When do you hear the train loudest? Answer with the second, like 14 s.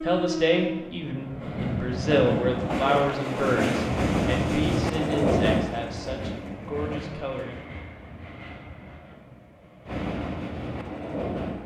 5 s.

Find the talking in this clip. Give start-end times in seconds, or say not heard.
0.0-7.6.